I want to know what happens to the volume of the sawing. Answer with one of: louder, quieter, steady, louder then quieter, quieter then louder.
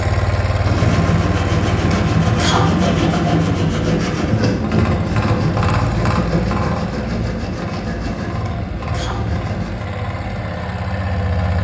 quieter.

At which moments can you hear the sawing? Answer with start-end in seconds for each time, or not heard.
0.6-9.9.